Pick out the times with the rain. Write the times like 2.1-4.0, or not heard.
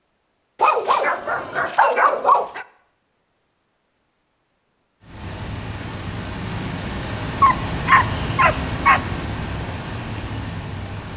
5.0-11.1.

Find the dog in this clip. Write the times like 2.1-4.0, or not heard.
0.6-2.6, 7.4-9.0.